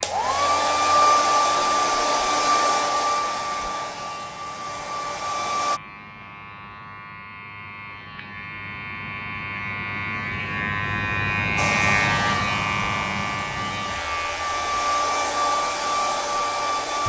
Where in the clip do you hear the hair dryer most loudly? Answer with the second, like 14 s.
1 s.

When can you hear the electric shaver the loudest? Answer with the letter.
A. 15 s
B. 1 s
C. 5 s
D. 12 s
D.